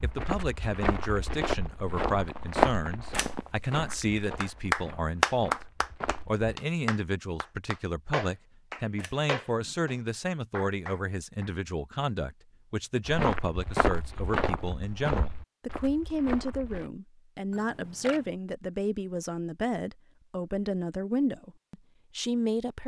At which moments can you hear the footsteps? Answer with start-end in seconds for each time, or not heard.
0.0-6.5, 13.1-16.9.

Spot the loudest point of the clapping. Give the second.
5 s.